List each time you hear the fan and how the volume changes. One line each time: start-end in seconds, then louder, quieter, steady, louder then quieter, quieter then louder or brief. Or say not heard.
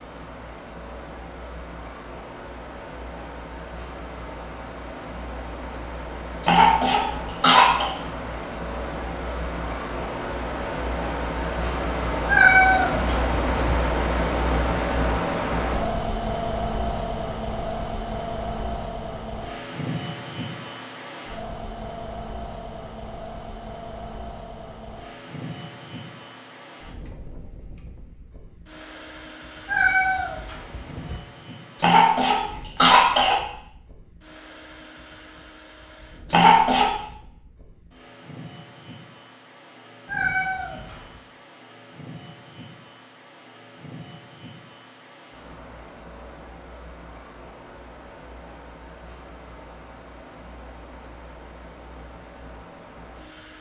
0.0-53.5 louder then quieter.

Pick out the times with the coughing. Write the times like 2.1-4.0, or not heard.
6.4-7.9, 31.8-33.4, 36.3-36.9.